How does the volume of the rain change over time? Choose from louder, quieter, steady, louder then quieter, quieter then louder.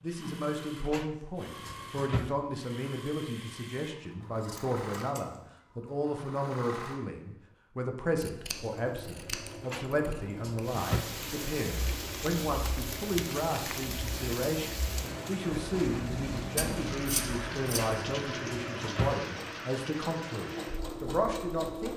steady.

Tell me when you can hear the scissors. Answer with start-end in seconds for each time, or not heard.
4.3-5.5, 8.2-10.8, 16.6-17.9.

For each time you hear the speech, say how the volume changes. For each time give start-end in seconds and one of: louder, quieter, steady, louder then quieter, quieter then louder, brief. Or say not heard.
0.0-21.9 steady.